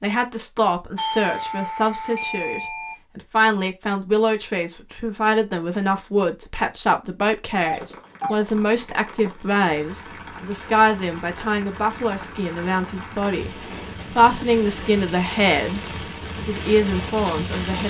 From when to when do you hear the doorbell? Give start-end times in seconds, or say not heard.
0.9-3.0, 7.7-8.3, 14.1-15.2.